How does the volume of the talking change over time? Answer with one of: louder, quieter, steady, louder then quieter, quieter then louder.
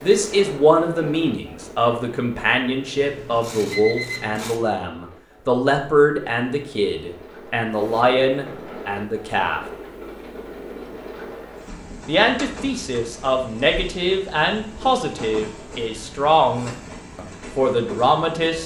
steady.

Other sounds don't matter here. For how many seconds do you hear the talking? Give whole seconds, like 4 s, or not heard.
16 s.